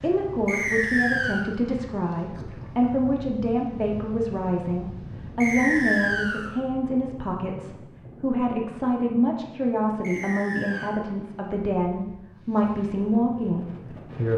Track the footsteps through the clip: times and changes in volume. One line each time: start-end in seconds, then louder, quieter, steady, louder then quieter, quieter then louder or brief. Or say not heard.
not heard.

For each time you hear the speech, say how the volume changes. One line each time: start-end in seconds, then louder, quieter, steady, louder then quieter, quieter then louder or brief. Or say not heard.
0.0-14.3 steady.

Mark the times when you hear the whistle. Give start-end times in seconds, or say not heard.
0.5-1.4, 5.4-6.5, 10.0-10.9.